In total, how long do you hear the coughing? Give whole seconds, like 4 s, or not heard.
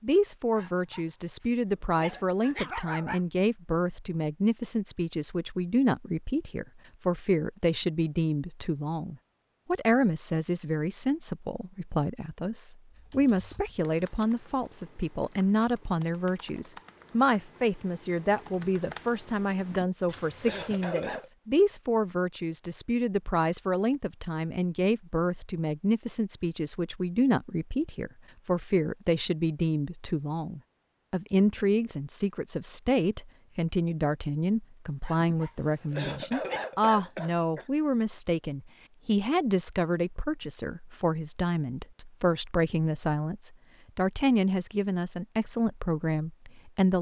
4 s.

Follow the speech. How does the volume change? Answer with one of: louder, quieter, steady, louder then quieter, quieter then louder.
steady.